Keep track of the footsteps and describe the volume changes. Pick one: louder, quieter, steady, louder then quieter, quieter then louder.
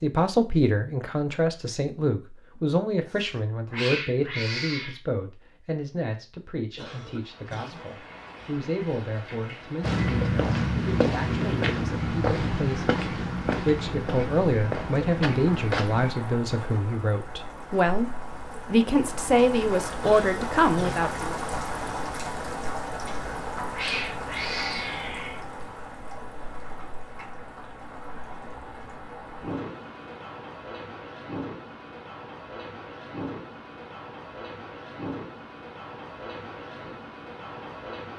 quieter.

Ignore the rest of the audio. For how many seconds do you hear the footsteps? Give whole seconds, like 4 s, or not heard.
6 s.